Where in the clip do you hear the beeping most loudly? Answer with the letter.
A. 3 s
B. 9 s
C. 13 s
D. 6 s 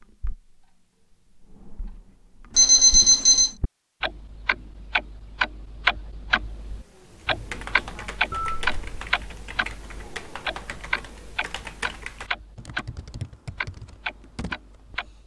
A.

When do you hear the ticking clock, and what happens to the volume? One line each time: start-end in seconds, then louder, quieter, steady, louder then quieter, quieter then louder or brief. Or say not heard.
0.0-0.7 brief
1.4-15.2 louder then quieter.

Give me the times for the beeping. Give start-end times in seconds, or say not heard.
2.5-3.5, 8.3-8.8.